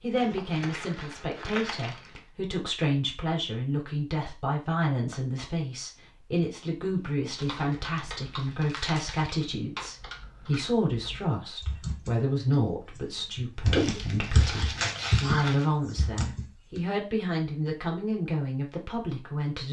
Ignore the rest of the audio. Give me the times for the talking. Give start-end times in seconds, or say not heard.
0.0-19.6.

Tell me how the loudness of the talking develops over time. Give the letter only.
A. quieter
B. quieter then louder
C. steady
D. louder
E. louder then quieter
C.